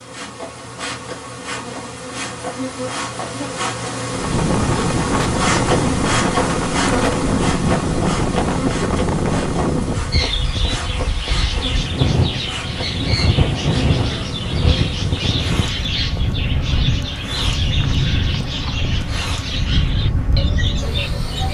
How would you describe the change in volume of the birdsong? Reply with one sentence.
The loudness of the birdsong stays about the same.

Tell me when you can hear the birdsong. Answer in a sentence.
The birdsong can be heard from 10.1 to 21.4 s.